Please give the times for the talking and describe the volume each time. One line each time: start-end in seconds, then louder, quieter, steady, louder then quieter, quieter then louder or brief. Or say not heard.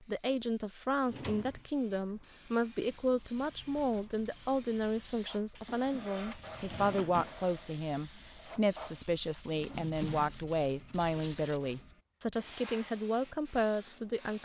0.1-14.3 steady.